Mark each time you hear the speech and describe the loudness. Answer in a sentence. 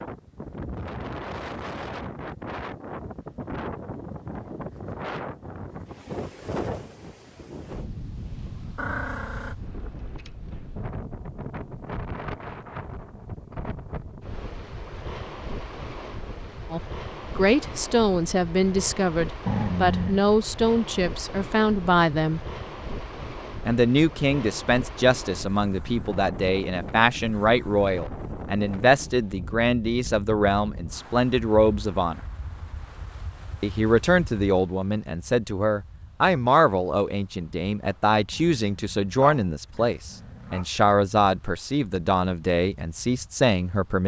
The speech can be heard from 16.7 to 22.4 s, at a steady volume; from 23.6 to 32.2 s, at a steady volume; and from 33.6 to 44.0 s, at a steady volume.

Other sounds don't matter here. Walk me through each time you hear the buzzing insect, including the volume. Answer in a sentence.
The buzzing insect can't be heard in this clip.